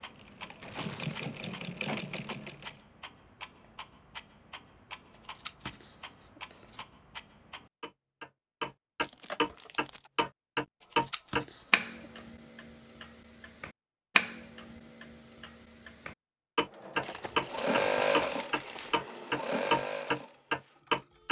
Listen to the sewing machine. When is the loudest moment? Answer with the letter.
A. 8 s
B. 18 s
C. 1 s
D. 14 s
B.